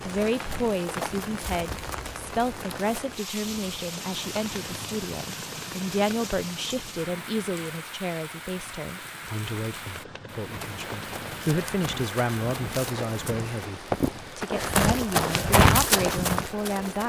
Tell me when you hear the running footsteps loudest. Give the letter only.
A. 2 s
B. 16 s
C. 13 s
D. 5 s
B.